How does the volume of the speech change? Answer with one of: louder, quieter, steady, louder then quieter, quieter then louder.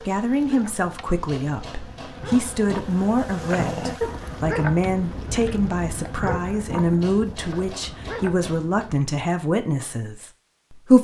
steady.